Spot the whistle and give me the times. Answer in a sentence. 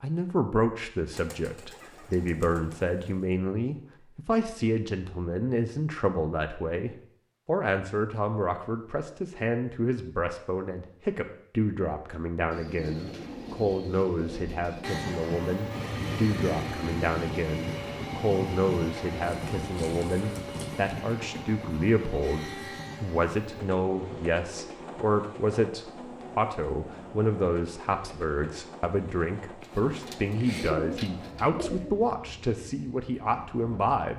You can't hear the whistle here.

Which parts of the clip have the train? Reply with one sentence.
The train can be heard from 14.8 to 34.0 s.